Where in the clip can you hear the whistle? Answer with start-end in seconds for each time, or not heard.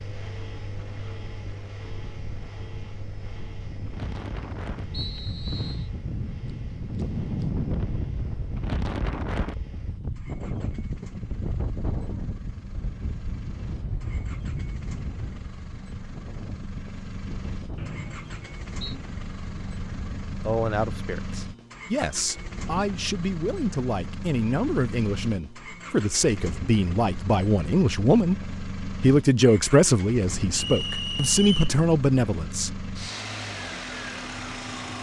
4.9-5.9, 17.8-18.8, 30.6-31.8.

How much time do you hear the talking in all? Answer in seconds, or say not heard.
12 s.